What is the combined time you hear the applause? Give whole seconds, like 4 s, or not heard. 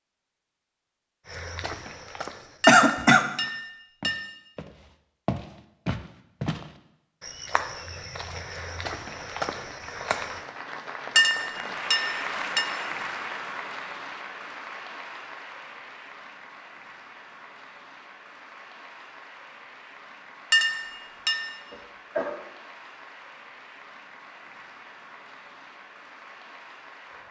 19 s.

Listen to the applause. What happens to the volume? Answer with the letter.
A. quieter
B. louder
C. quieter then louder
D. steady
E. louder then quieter
A.